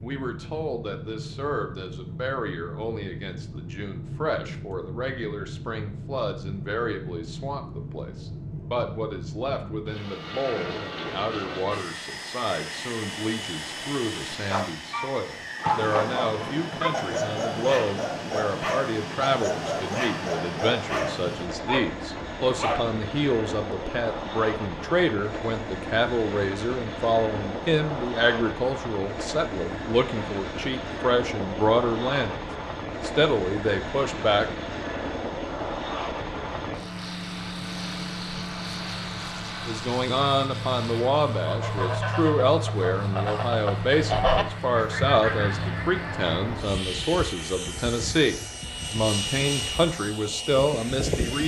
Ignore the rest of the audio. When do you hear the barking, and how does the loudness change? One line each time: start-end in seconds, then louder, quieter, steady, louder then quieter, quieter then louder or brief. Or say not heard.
14.5-22.9 steady.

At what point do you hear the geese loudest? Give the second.
44 s.